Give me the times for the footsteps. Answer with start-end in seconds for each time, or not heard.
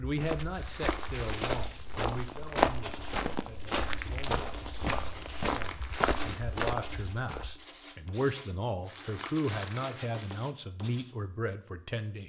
0.0-7.5.